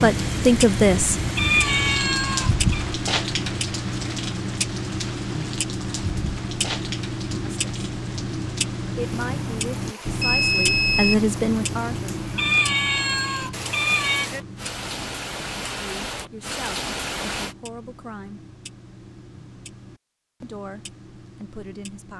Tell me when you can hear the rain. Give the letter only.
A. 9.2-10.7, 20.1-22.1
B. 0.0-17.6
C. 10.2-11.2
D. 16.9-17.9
B.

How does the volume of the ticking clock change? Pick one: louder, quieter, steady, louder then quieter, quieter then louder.
quieter.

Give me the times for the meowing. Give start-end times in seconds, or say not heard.
1.4-2.9, 12.3-14.3.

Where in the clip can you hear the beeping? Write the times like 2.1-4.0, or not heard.
10.2-11.2.